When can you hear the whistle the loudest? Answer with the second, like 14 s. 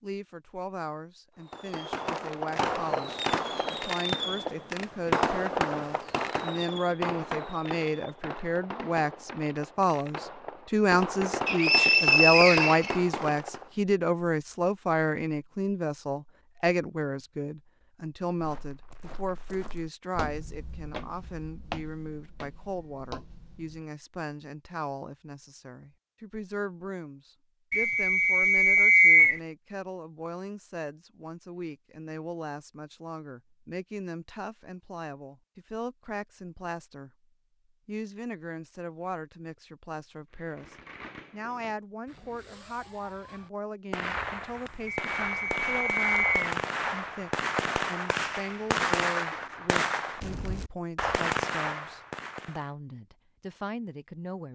29 s.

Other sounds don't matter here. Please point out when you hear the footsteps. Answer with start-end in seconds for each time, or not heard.
18.4-23.9.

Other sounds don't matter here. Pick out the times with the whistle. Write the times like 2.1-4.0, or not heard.
11.4-12.9, 27.7-29.4, 44.9-46.5.